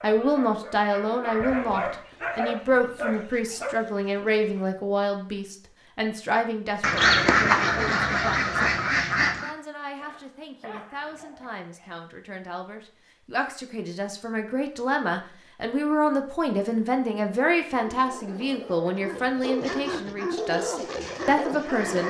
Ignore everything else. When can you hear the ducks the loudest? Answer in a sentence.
The volume of the ducks peaks at 7 seconds.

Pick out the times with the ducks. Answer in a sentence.
You can hear the ducks from 6.8 to 9.5 s.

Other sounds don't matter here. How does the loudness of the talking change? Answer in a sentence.
The volume of the talking goes down, then up.